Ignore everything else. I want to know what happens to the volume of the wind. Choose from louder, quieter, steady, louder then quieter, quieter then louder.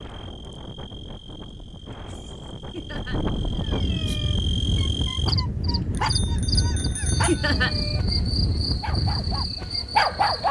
louder.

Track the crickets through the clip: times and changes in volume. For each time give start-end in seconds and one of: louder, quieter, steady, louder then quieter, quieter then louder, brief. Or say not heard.
0.0-10.4 louder.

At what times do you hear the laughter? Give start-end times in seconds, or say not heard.
2.7-3.2, 7.2-7.8.